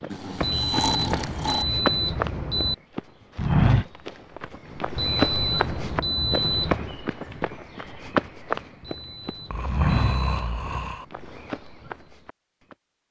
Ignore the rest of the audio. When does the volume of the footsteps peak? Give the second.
4 s.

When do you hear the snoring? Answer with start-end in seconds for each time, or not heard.
0.1-1.6, 9.5-11.1.